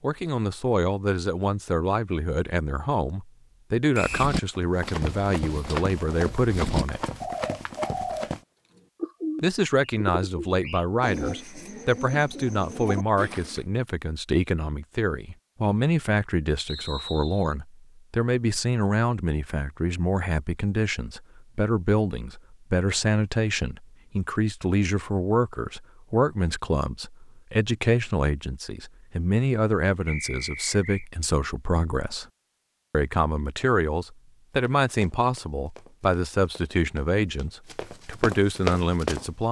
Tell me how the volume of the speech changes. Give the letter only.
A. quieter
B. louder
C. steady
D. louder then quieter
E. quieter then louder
C.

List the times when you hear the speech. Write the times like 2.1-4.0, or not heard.
0.0-7.1, 9.4-32.2, 32.9-39.4.